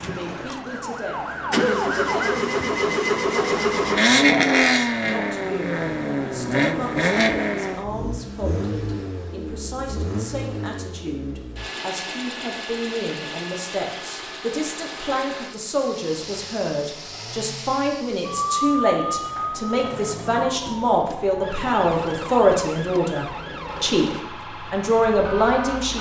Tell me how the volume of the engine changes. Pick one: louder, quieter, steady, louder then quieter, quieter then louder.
quieter.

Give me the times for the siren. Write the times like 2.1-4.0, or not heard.
0.0-2.4, 18.2-25.9.